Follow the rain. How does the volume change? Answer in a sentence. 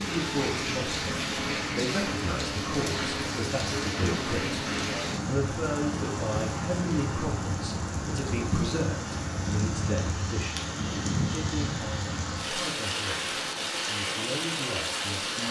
The volume of the rain stays about the same.